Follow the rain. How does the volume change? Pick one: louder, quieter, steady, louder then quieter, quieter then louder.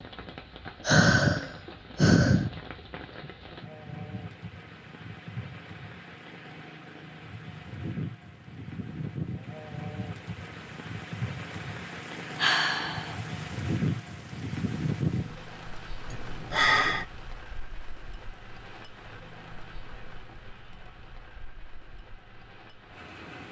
louder then quieter.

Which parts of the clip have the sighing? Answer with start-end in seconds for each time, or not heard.
0.8-2.6, 12.3-13.2, 16.1-17.1.